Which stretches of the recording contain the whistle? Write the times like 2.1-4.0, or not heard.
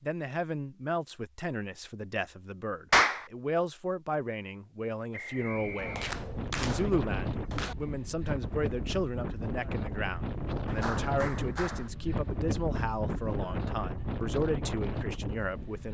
5.1-6.1.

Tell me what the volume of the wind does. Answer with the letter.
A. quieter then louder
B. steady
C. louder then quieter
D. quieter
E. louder
B.